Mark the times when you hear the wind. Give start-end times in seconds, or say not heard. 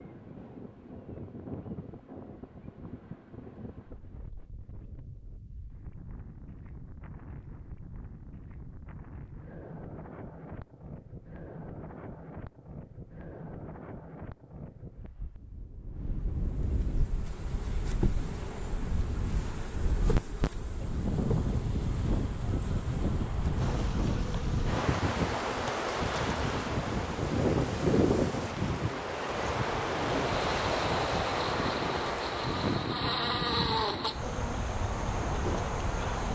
0.0-36.2.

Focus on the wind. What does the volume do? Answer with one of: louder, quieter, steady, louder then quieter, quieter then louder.
louder.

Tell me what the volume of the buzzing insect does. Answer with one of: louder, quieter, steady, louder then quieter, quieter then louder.
louder.